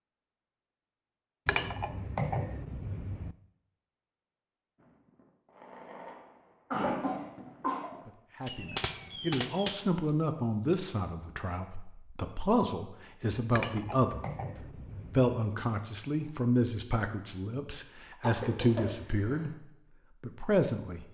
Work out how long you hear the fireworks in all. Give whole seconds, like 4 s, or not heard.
5 s.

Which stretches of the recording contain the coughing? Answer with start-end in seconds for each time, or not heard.
6.7-7.9, 18.2-19.5.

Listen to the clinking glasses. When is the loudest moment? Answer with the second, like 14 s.
2 s.